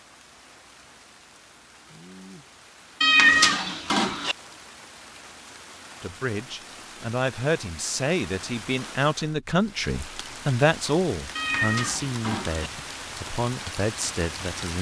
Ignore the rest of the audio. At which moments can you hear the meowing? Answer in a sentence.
You can hear the meowing from 3.0 to 4.3 s and from 11.3 to 12.7 s.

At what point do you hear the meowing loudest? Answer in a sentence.
The loudest moment of the meowing is at 3 seconds.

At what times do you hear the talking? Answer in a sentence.
You can hear the talking from 6.0 to 14.7 s.